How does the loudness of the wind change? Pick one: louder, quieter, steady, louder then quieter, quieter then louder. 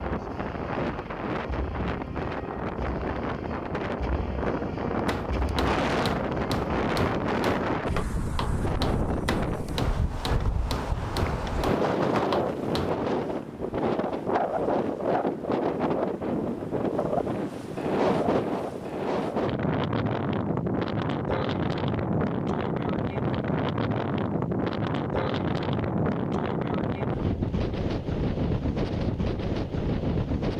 steady.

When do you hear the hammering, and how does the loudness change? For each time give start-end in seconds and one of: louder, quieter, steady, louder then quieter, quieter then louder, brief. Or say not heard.
5.0-13.1 steady.